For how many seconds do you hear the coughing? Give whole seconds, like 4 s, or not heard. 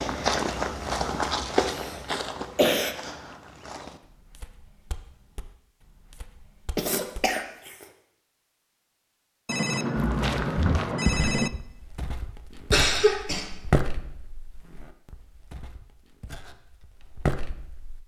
4 s.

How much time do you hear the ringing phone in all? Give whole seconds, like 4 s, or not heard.
2 s.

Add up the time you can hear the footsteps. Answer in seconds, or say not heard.
15 s.